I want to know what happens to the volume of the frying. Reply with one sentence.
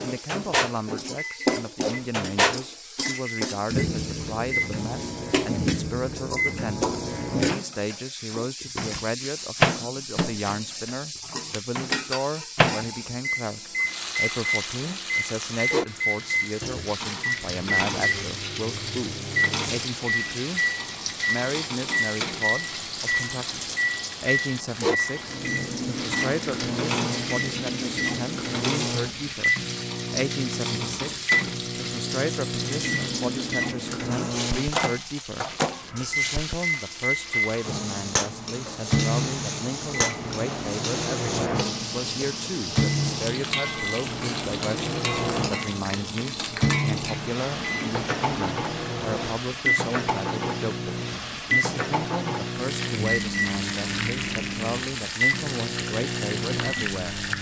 The volume of the frying stays about the same.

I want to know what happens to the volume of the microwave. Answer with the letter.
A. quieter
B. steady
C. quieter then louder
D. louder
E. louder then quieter
B.